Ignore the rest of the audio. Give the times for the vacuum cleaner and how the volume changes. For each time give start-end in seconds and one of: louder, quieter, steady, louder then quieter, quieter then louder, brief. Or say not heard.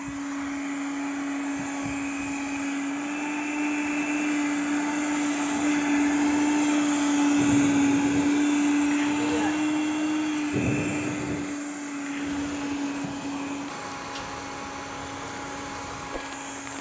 0.0-16.7 louder then quieter.